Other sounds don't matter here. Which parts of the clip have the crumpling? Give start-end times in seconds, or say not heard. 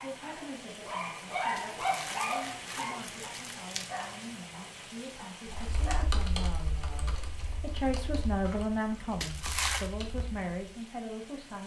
1.6-3.9, 9.2-9.9.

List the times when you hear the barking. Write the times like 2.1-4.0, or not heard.
0.0-6.1.